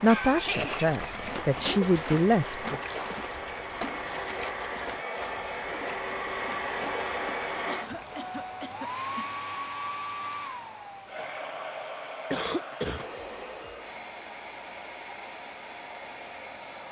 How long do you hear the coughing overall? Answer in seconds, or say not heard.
4 s.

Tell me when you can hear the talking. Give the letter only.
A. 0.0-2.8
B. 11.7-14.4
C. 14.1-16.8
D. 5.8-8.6
A.